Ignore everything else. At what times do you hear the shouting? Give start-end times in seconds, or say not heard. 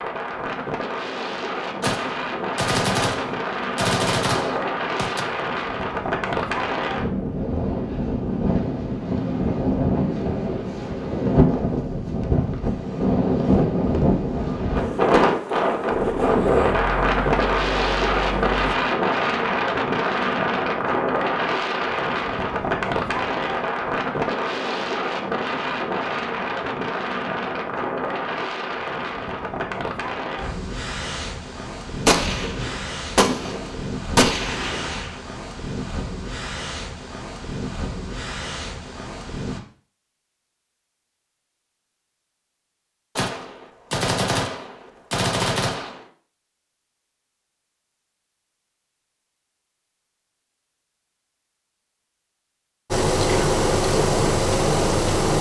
not heard.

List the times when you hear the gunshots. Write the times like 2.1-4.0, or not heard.
1.8-5.2, 32.0-35.2, 43.1-46.0.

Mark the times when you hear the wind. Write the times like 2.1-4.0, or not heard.
0.0-39.6.